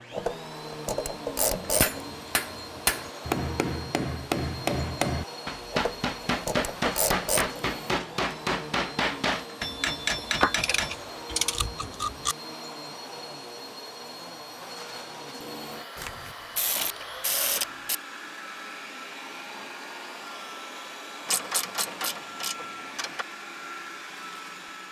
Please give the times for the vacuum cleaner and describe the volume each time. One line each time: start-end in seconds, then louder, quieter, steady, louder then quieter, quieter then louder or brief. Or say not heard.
0.0-24.8 steady.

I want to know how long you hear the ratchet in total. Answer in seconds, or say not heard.
10 s.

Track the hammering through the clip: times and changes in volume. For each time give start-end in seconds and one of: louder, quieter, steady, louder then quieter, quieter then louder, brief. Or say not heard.
1.6-10.9 steady.